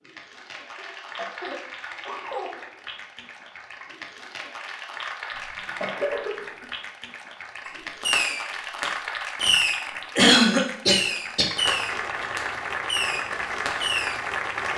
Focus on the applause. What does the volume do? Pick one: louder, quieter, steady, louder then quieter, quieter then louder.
louder.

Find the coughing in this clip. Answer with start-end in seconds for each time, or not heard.
0.8-2.6, 5.3-6.7, 10.2-11.4.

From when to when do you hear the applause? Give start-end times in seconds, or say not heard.
0.0-14.7.